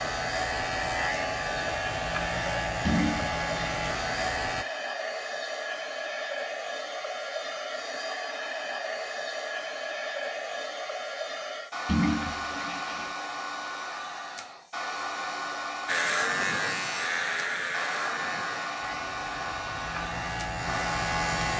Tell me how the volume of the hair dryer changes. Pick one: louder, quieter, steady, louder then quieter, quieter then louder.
steady.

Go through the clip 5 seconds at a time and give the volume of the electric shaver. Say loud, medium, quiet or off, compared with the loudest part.
loud, off, off, loud, loud.